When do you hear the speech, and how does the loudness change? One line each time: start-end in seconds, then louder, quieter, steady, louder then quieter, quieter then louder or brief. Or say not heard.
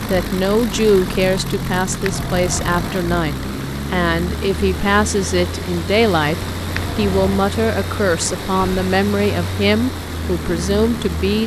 0.1-11.4 steady.